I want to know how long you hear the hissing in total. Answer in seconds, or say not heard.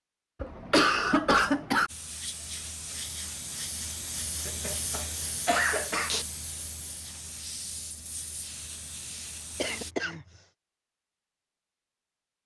8 s.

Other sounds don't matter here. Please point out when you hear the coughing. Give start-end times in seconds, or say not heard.
0.4-1.9, 4.5-6.2, 9.6-10.2.